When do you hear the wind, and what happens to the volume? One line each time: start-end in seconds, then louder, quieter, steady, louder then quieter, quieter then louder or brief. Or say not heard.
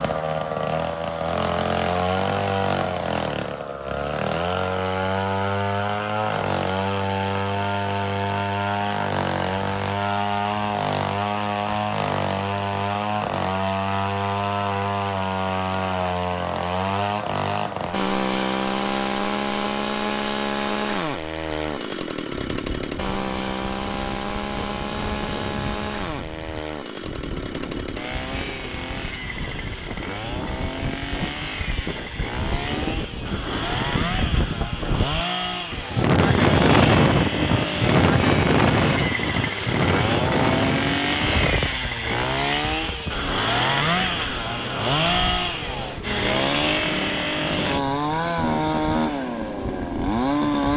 22.5-50.7 louder then quieter.